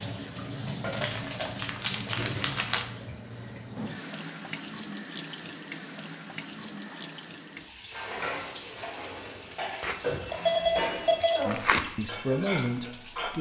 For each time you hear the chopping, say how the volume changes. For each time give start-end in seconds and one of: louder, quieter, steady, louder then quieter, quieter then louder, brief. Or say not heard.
not heard.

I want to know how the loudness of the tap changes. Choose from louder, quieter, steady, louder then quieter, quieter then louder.
quieter.